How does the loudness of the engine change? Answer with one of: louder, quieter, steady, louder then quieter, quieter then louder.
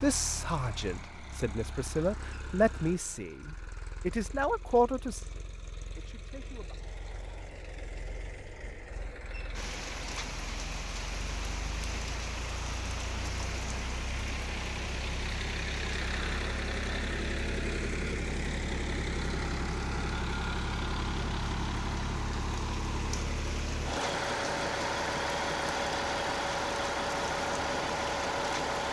louder.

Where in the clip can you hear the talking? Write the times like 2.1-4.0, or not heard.
0.0-6.8.